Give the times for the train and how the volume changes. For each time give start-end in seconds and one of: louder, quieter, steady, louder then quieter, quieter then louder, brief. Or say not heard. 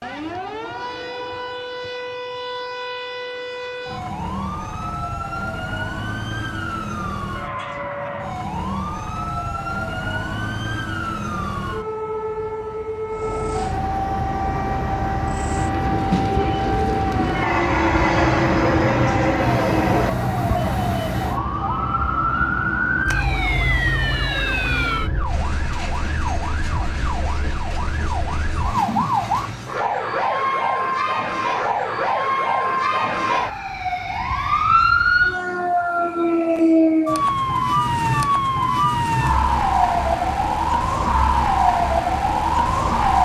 13.1-29.8 louder then quieter.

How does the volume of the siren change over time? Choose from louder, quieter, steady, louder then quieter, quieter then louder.
louder.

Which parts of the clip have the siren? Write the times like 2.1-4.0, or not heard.
0.0-43.1.